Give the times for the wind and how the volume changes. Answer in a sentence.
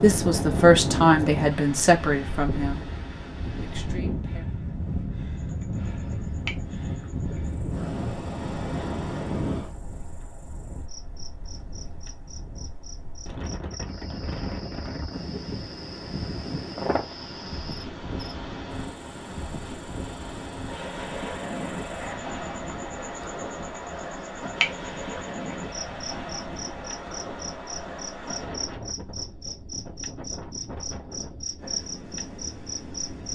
The wind can be heard from 0.0 to 33.3 s, getting quieter.